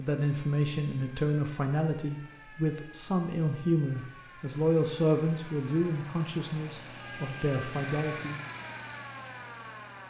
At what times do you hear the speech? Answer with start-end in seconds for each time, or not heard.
0.0-8.4.